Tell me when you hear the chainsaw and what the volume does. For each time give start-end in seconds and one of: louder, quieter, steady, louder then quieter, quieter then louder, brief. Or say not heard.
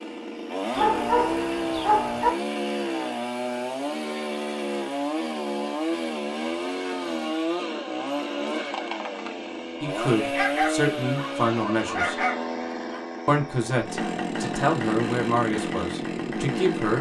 0.0-16.9 steady.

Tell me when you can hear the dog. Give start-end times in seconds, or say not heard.
0.8-2.3, 10.3-13.0.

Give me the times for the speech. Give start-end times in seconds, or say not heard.
9.8-12.2, 13.2-16.9.